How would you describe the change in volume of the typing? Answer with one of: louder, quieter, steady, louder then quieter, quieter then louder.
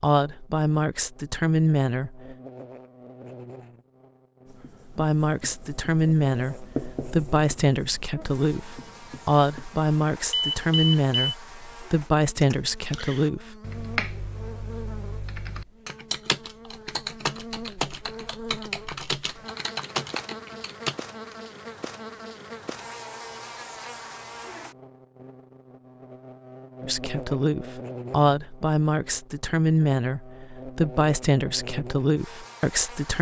quieter then louder.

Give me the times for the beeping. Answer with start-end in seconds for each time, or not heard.
10.3-11.3.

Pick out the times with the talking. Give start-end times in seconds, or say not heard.
0.0-2.4, 4.8-13.6, 26.8-33.1.